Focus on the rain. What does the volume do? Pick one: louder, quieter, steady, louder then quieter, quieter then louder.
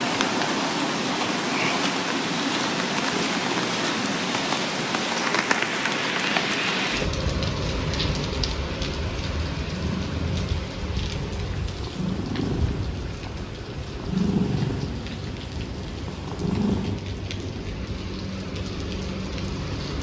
quieter.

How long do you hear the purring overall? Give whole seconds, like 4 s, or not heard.
7 s.